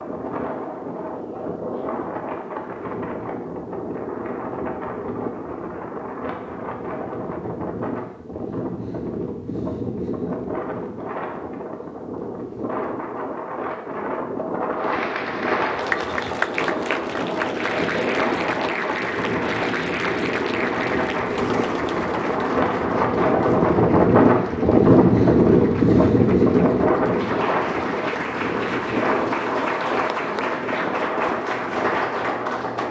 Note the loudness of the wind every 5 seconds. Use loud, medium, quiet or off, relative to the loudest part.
medium, medium, medium, medium, loud, loud, medium.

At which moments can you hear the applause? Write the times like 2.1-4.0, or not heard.
14.8-32.8.